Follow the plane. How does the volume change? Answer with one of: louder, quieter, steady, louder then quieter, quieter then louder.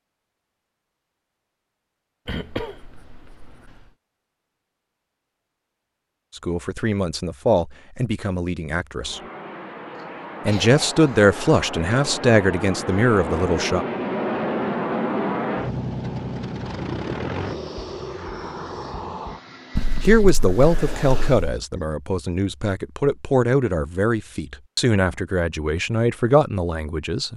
louder then quieter.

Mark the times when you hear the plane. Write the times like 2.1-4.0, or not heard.
8.9-20.3.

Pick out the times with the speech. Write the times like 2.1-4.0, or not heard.
6.3-9.2, 10.4-13.8, 20.0-27.3.